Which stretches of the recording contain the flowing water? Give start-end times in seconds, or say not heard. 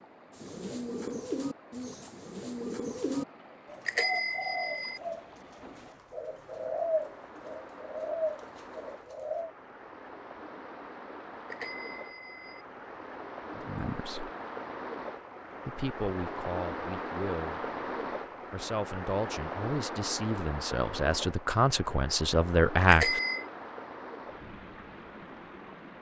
0.0-25.9.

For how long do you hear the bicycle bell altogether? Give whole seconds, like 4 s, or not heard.
3 s.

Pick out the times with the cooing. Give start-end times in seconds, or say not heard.
0.3-9.5.